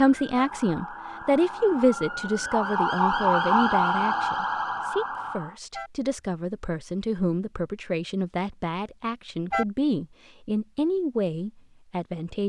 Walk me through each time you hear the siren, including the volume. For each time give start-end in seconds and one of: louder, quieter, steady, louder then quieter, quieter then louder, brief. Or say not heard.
0.0-5.6 louder then quieter.